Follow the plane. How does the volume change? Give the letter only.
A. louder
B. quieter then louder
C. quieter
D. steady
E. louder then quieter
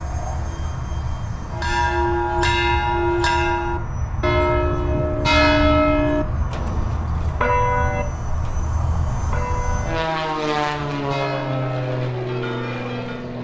A.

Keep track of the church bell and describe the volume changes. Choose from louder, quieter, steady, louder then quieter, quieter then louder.
quieter.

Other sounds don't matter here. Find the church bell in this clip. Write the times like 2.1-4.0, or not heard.
1.5-13.2.